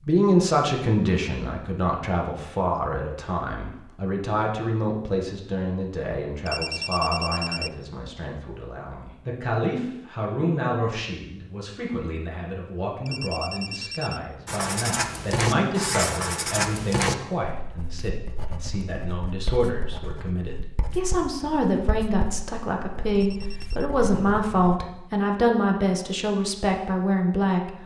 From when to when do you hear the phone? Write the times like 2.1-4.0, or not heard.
6.5-7.7, 13.1-14.2, 23.1-23.9.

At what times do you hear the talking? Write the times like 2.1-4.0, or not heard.
0.1-27.8.